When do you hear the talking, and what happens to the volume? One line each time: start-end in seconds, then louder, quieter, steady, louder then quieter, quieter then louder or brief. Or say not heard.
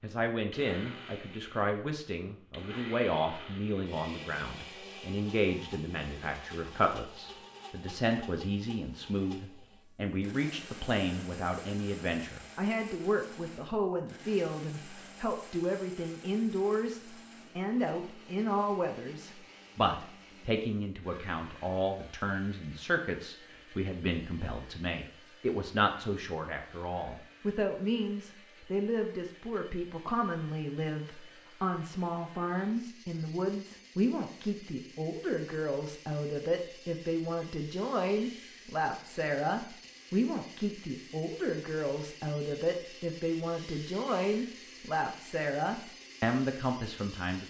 0.0-47.4 steady.